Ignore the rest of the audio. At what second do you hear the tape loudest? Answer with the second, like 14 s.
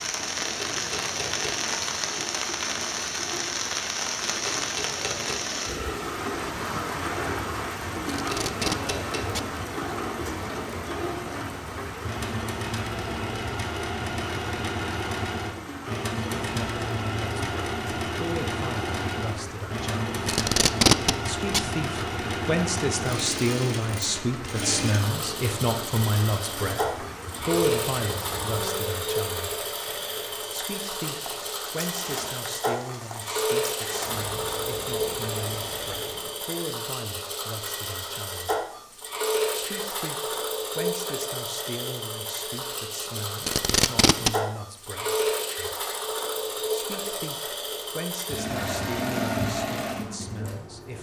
21 s.